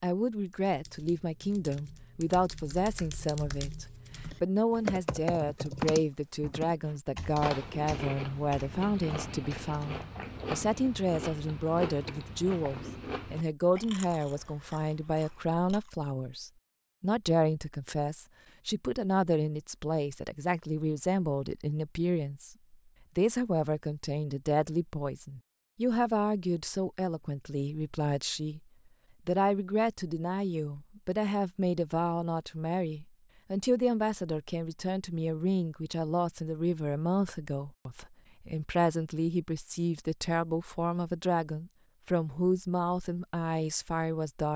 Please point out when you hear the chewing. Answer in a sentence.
The chewing can be heard from 6.8 to 15.9 s.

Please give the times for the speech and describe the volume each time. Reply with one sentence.
You can hear the speech from 0.0 to 28.6 s, at a steady volume; and from 29.2 to 44.5 s, at a steady volume.